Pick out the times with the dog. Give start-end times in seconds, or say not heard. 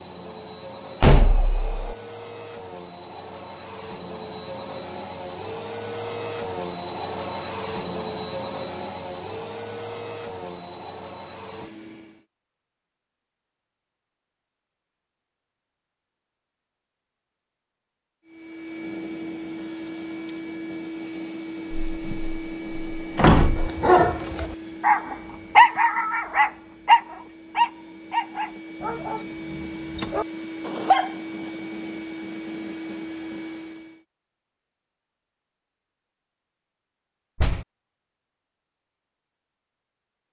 23.6-31.1.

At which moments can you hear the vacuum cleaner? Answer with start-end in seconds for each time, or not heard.
0.0-12.2, 18.2-34.0.